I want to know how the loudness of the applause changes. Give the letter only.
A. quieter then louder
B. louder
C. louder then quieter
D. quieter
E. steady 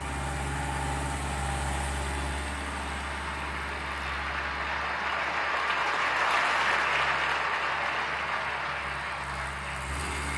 C.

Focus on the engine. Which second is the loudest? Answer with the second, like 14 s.
1 s.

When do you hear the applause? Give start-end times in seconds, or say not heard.
0.0-10.3.